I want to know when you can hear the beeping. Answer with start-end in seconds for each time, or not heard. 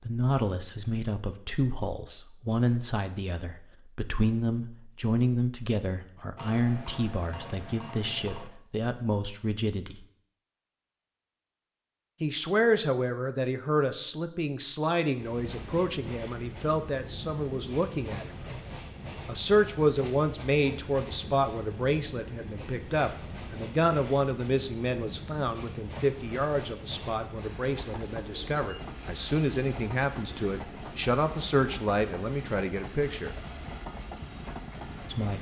6.3-8.5.